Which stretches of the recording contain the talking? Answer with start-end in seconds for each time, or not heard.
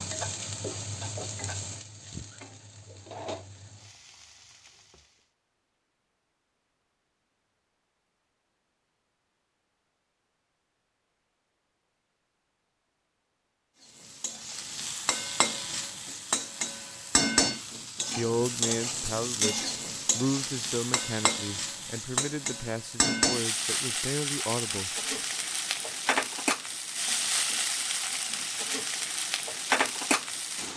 18.1-24.9.